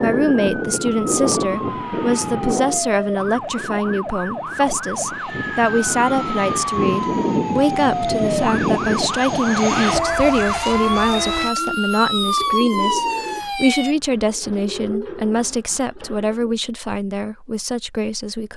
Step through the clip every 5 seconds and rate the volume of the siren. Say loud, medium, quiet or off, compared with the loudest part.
medium, loud, loud, off.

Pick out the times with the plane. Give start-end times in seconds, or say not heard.
0.0-11.5.